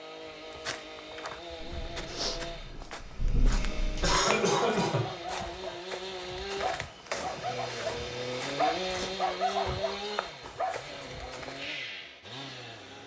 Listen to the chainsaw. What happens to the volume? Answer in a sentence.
The volume of the chainsaw goes up, then down.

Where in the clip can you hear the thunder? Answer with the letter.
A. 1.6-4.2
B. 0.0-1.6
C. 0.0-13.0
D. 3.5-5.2
A.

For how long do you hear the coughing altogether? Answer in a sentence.
You can hear the coughing for 2 seconds altogether.